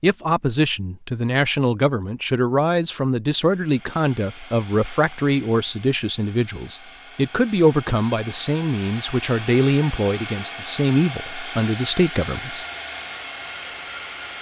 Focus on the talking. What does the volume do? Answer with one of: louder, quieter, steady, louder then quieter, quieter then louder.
steady.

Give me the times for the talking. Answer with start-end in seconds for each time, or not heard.
0.0-12.7.